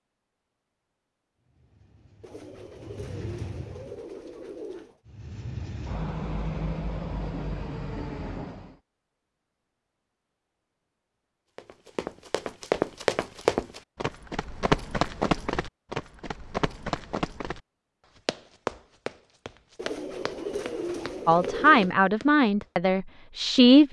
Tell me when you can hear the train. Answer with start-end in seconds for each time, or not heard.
1.4-4.0, 5.0-8.8.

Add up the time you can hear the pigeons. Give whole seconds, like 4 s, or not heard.
5 s.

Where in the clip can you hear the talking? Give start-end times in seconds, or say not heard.
21.2-23.8.